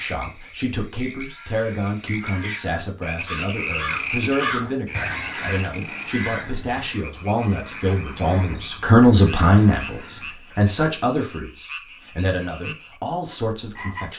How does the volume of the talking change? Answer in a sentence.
The loudness of the talking goes up, then down.